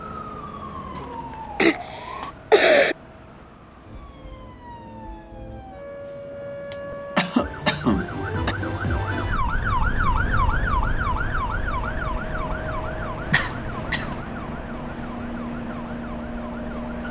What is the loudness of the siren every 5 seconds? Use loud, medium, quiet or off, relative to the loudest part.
medium, loud, loud, quiet.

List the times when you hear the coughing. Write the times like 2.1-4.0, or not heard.
0.9-3.0, 6.7-8.6, 13.3-14.2.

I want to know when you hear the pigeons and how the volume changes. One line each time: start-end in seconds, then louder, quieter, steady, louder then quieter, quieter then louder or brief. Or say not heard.
not heard.